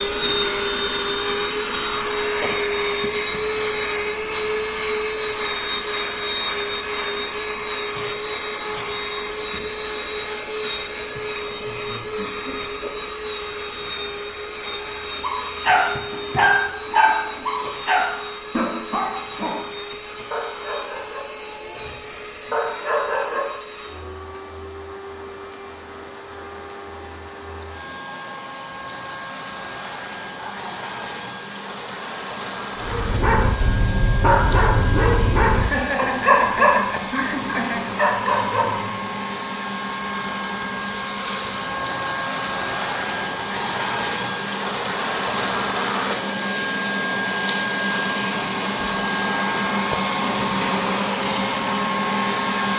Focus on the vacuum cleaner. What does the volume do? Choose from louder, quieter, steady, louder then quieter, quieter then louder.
quieter then louder.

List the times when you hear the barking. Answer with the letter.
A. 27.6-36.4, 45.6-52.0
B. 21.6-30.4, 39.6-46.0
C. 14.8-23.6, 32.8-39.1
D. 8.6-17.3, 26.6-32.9
C.